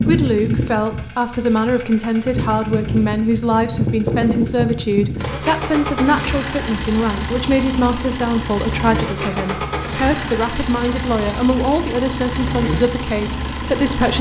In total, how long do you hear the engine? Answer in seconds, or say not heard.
14 s.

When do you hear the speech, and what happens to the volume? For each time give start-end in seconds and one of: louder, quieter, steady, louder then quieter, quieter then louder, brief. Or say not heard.
0.1-14.1 steady.